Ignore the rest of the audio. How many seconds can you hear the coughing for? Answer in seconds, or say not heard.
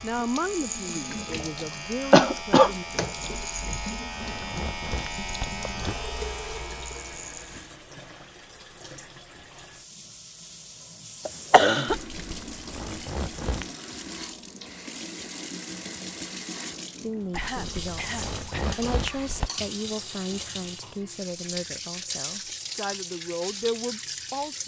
3 s.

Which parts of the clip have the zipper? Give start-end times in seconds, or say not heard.
3.5-6.0, 11.8-13.7, 17.3-19.5.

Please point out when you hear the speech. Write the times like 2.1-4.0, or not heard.
0.0-2.9, 17.0-24.6.